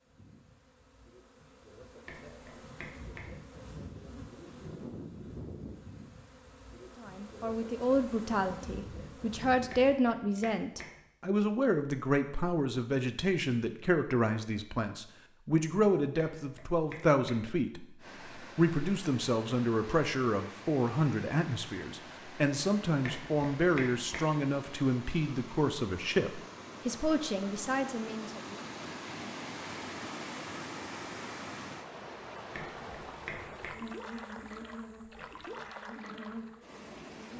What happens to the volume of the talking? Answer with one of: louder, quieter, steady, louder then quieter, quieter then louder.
steady.